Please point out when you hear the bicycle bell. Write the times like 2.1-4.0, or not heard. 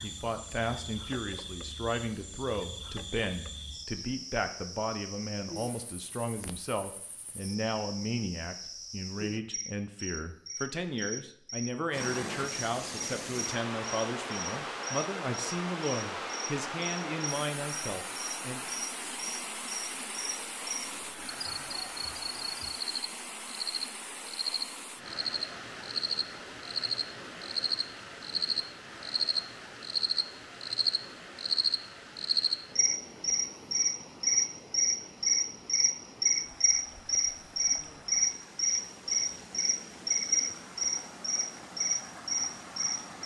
not heard.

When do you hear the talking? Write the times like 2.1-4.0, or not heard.
0.0-18.6.